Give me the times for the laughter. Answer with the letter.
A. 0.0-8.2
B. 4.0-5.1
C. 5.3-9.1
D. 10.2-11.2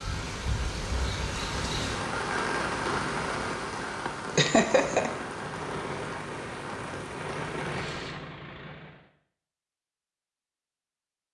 B.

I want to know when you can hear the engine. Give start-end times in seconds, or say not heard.
5.3-9.1.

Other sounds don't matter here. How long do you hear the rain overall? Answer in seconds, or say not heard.
8 s.